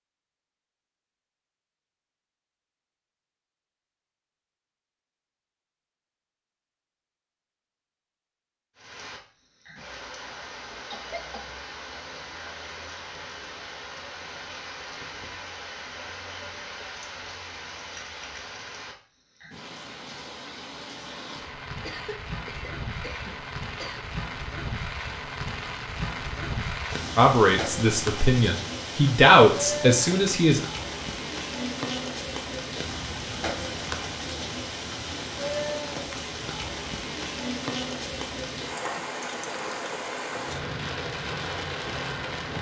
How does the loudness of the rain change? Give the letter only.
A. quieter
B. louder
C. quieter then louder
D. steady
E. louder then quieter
B.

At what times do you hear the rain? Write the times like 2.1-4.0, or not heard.
8.8-42.5.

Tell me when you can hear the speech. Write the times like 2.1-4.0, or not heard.
27.1-30.6.